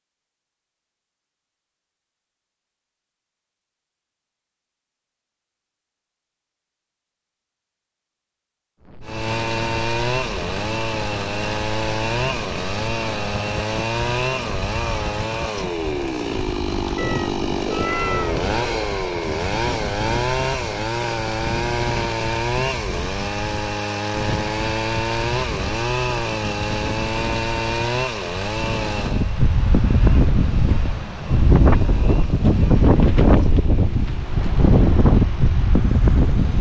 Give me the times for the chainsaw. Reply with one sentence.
The chainsaw can be heard from 9.0 to 36.5 s.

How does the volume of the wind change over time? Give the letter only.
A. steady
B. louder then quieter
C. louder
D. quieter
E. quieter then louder
C.